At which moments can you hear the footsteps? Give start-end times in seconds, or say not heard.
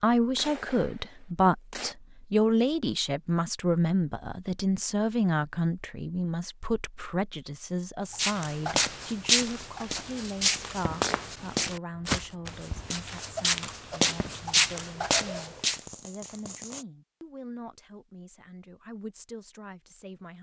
8.1-15.8.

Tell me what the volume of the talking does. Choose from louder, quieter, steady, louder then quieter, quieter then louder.
quieter.